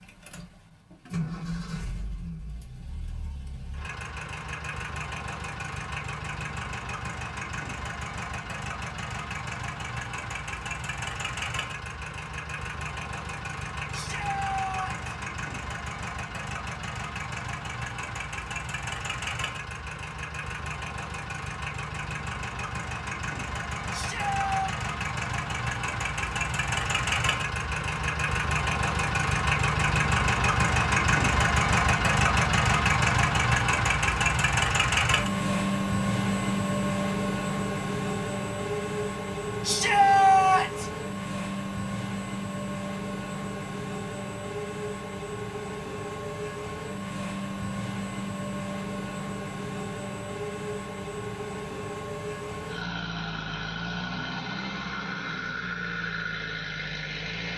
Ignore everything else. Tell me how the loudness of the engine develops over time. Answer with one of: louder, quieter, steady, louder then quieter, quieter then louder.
louder then quieter.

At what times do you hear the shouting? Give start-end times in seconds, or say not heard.
13.9-15.2, 23.9-24.7, 39.6-40.9.